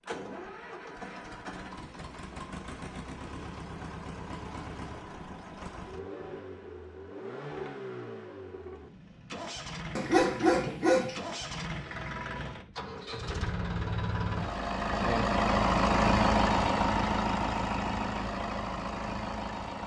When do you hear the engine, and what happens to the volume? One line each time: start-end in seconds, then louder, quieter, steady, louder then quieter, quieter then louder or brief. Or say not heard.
0.0-19.8 louder.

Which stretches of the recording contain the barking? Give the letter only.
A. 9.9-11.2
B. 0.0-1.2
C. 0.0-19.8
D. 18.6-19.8
A.